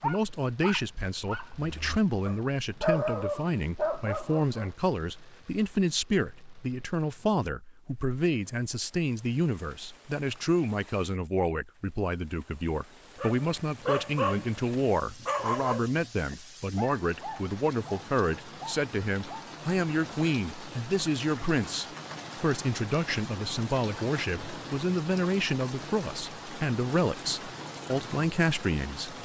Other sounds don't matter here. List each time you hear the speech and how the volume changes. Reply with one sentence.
The speech can be heard from 0.0 to 29.1 s, at a steady volume.